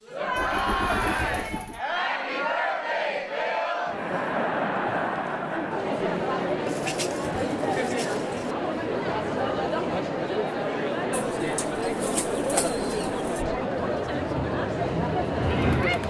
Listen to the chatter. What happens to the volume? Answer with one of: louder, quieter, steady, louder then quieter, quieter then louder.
steady.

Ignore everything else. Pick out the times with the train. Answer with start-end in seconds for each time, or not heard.
14.0-16.0.